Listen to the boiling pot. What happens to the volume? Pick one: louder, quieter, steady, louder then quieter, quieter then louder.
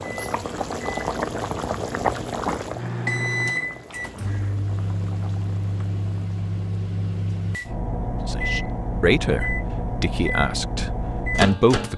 quieter.